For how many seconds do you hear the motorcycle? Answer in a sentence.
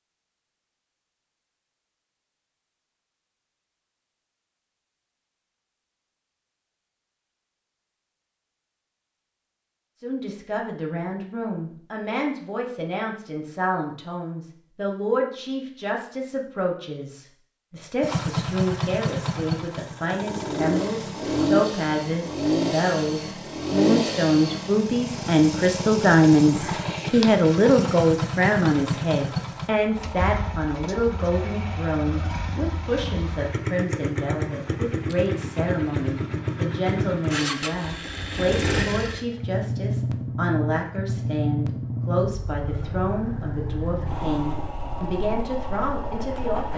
You can hear the motorcycle for 29 seconds altogether.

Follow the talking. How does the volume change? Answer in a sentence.
The loudness of the talking goes up, then down.